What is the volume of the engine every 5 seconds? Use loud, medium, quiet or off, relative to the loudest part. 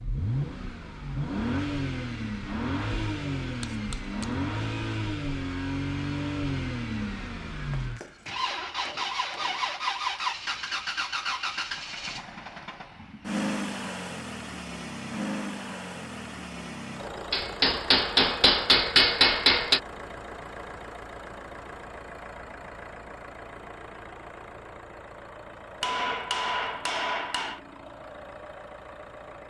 loud, loud, loud, medium, medium, quiet.